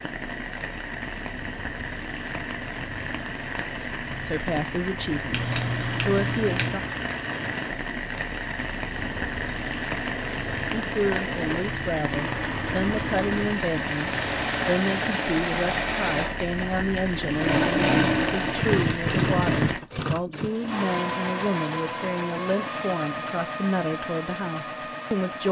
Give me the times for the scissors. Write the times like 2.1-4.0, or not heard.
5.3-6.7.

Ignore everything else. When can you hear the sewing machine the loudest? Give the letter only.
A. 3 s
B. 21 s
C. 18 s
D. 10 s
C.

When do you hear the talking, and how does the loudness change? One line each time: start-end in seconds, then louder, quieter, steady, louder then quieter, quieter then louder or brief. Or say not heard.
4.2-6.8 brief
10.7-25.4 steady.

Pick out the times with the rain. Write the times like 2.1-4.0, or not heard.
0.0-19.8.